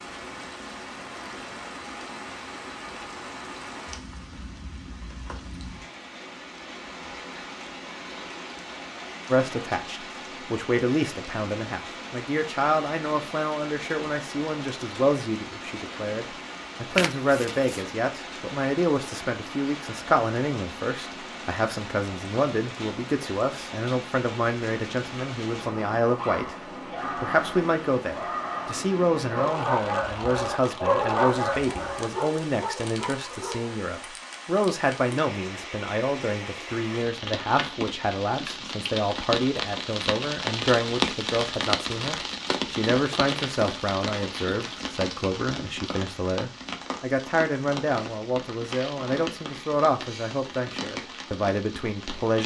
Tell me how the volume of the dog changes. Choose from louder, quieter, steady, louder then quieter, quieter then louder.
louder then quieter.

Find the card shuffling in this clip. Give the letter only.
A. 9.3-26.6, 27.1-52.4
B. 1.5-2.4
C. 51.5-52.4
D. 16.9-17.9
D.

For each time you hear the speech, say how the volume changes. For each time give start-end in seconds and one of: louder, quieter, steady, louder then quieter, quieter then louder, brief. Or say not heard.
9.3-26.6 steady
27.1-52.4 steady.